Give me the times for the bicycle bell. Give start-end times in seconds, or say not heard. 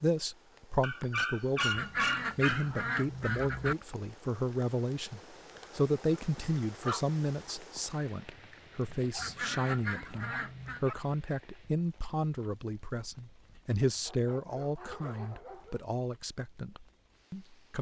not heard.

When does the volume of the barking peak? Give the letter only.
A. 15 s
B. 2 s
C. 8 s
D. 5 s
B.